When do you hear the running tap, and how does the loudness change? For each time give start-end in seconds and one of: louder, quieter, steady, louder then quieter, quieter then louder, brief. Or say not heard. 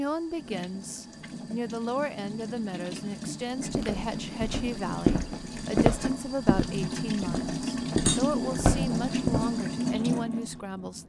0.0-11.0 louder.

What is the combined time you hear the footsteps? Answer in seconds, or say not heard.
6 s.